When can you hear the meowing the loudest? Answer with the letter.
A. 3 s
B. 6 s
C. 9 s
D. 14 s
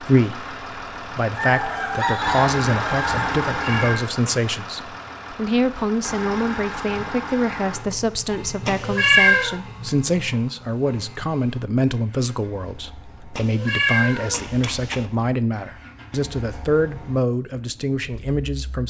C.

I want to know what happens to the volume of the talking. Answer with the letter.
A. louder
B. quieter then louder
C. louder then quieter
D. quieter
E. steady
E.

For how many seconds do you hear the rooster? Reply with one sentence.
You can hear the rooster for 2 seconds altogether.